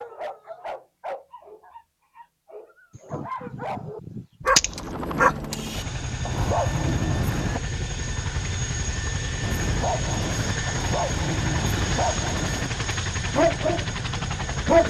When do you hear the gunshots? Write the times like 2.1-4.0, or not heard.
3.0-4.9.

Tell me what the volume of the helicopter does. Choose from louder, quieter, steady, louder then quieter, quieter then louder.
steady.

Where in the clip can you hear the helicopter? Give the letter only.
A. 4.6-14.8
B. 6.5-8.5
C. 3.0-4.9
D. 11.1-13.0
A.